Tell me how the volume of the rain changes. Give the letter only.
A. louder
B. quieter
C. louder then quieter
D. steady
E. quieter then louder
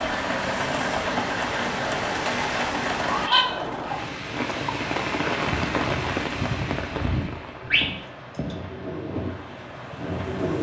B.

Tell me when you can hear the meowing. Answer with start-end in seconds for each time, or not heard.
2.2-3.5, 7.7-8.6.